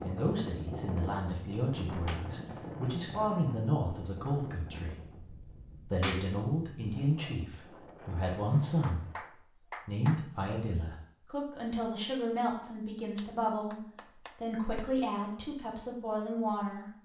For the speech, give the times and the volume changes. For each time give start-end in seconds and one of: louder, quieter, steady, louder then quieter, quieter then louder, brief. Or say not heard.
0.0-16.9 steady.